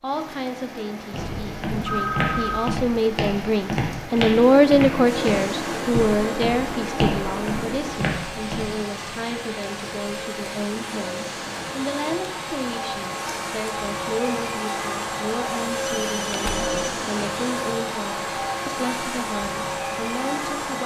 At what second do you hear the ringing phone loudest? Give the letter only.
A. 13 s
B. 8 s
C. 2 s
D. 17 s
C.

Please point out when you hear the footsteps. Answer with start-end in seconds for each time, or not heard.
1.1-8.7.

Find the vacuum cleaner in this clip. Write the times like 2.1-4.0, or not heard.
5.0-20.8.